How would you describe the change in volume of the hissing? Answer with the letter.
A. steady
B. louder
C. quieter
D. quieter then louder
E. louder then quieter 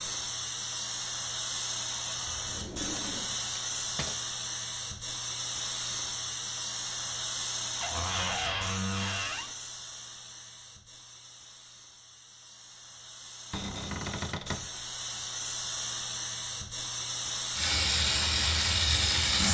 D.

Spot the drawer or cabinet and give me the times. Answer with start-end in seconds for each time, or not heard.
2.5-4.2, 7.8-9.6, 13.5-14.7.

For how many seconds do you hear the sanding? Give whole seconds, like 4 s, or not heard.
not heard.